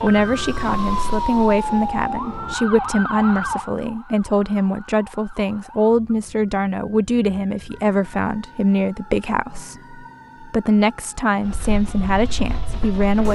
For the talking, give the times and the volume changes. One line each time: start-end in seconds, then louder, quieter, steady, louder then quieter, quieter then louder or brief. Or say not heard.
0.0-13.3 steady.